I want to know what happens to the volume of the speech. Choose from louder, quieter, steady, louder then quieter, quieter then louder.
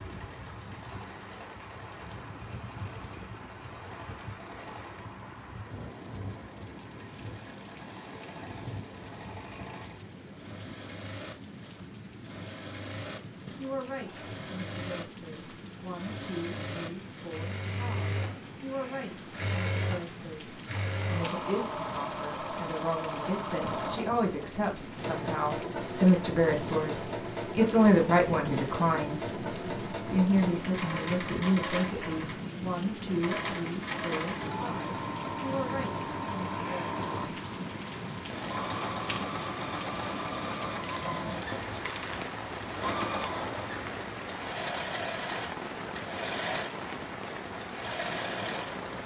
louder then quieter.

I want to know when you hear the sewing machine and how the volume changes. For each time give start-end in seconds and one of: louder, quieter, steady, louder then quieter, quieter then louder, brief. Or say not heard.
0.0-48.9 louder.